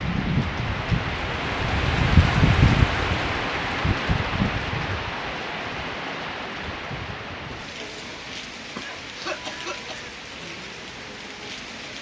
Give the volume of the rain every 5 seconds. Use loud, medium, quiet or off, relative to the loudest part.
loud, medium, quiet.